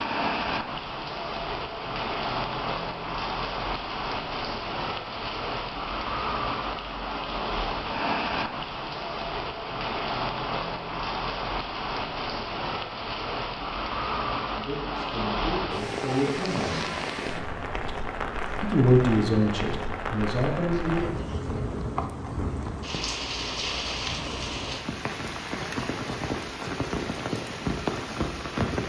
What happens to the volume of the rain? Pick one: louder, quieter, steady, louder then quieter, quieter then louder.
steady.